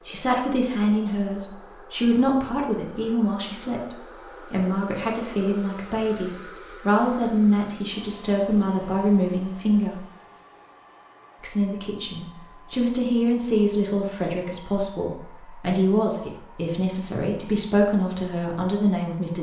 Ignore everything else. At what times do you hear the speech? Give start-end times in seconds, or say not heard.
0.1-10.0, 11.4-19.3.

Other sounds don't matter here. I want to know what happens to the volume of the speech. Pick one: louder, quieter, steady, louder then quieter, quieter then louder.
steady.